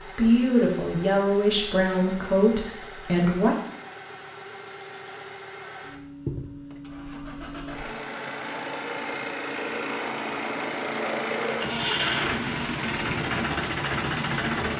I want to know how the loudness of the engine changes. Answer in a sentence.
The loudness of the engine goes up.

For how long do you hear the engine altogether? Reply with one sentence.
The engine can be heard for 15 seconds in total.